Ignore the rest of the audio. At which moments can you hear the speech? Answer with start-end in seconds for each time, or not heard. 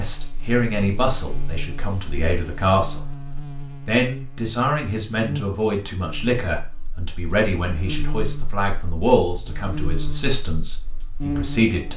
0.0-3.0, 3.9-11.9.